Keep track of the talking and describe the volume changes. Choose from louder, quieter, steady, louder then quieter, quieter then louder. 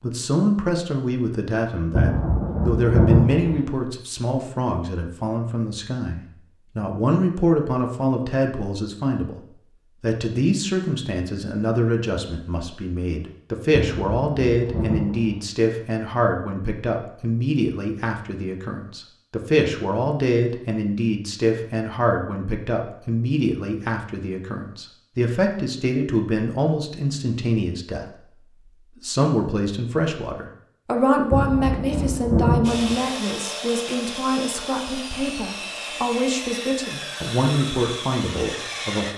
steady.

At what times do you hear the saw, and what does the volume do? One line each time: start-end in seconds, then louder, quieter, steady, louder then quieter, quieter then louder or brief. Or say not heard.
32.6-39.1 steady.